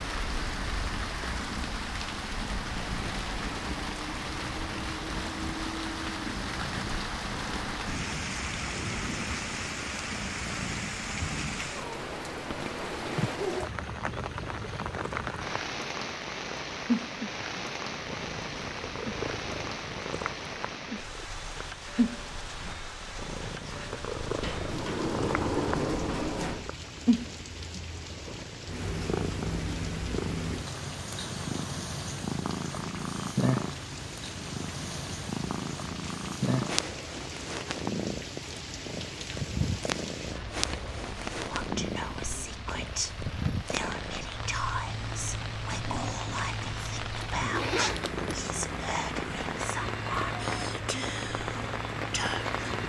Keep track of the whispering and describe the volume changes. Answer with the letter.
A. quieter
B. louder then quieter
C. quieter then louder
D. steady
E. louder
D.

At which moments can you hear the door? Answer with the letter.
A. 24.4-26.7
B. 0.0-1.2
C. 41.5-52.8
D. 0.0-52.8
A.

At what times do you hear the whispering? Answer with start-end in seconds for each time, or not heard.
41.5-52.8.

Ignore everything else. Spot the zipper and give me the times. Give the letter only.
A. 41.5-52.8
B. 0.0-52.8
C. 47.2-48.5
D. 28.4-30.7
C.